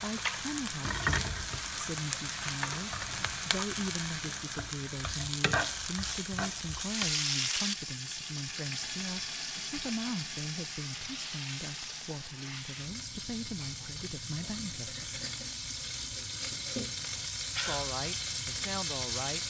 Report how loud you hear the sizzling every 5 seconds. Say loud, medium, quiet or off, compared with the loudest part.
loud, loud, medium, loud.